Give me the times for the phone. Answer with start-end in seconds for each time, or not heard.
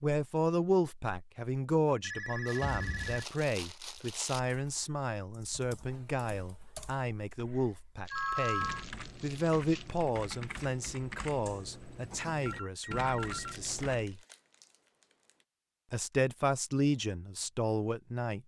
2.0-3.2, 8.1-8.8, 12.4-13.9.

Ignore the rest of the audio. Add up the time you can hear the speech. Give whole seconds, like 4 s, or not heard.
17 s.